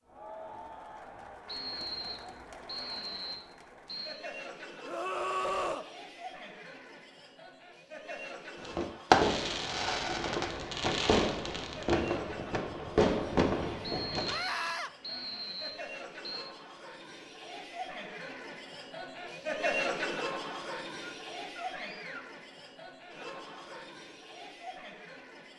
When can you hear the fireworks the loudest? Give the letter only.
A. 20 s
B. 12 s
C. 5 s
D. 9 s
D.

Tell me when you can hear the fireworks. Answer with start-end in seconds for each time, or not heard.
8.6-14.3.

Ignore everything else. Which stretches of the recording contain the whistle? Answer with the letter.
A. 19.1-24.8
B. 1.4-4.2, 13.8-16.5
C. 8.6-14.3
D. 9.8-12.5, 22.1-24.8
B.